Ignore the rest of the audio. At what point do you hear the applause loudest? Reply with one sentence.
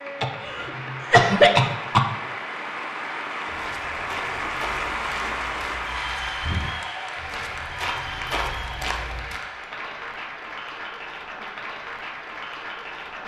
The loudest moment of the applause is at 5 seconds.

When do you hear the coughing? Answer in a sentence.
The coughing can be heard from 0.2 to 2.0 s.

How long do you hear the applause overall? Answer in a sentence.
You can hear the applause for 13 seconds altogether.